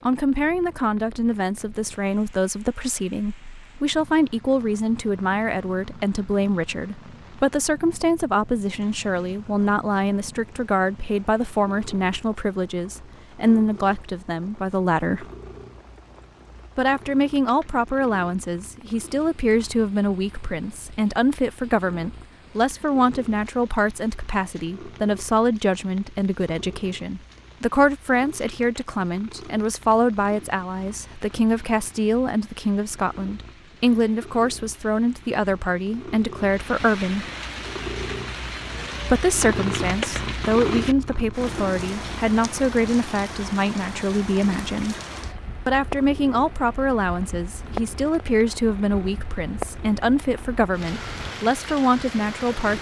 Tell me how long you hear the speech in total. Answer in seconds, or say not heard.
49 s.